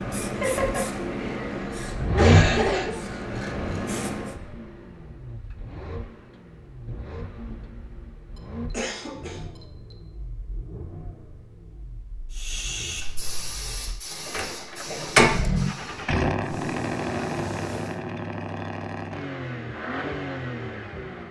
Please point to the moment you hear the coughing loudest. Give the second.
2 s.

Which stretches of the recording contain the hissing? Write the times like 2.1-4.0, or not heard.
0.0-4.3, 12.3-18.0.